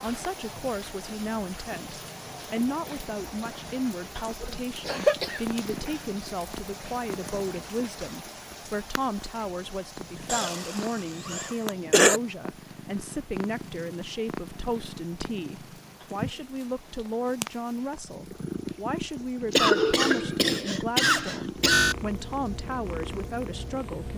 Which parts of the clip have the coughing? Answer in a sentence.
You can hear the coughing from 4.8 to 6.0 s, from 10.2 to 12.2 s and from 19.5 to 21.9 s.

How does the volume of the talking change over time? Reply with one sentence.
The loudness of the talking stays about the same.